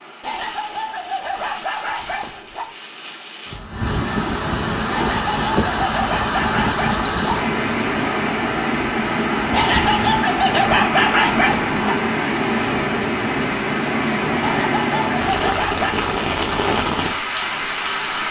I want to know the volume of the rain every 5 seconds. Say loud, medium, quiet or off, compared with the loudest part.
medium, loud, loud, loud.